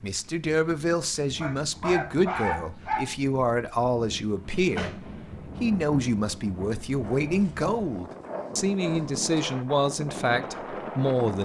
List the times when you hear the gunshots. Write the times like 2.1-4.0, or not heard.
4.5-5.5.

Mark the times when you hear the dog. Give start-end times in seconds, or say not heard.
1.4-3.1, 7.0-9.6.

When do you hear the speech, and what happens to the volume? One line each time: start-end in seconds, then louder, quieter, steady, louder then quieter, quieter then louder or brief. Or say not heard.
0.0-11.3 steady.